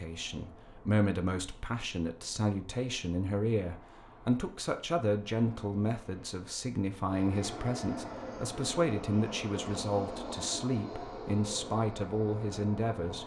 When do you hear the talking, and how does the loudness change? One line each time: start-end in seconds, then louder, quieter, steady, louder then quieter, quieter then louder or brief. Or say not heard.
0.0-13.2 steady.